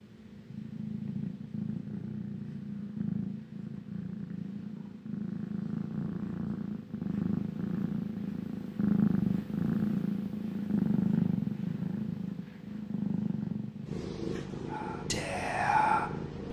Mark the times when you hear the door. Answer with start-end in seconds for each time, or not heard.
not heard.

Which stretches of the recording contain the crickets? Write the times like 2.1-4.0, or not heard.
not heard.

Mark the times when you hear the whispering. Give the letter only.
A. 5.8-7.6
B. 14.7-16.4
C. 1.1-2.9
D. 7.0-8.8
B.